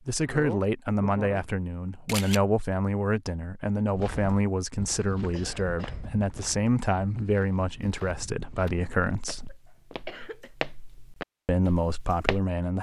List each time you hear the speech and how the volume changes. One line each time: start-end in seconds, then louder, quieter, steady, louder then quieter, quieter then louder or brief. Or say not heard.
0.1-9.6 steady
11.4-12.7 brief.